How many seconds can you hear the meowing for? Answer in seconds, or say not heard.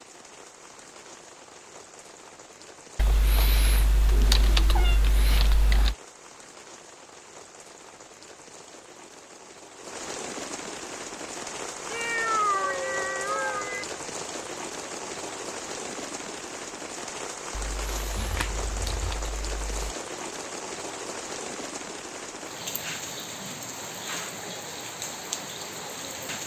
4 s.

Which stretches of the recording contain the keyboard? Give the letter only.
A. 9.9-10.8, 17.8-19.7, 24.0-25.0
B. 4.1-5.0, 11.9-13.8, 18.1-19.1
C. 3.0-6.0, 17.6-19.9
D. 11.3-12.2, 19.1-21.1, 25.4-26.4
C.